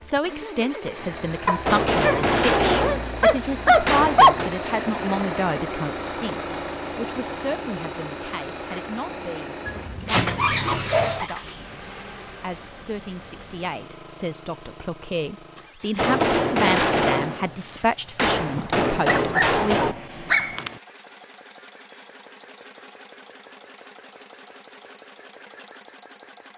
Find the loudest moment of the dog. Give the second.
4 s.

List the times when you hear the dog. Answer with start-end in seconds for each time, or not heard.
1.4-4.4, 9.7-11.3, 18.6-20.8.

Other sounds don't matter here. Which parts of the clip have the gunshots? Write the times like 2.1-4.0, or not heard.
1.6-4.5, 15.9-19.9.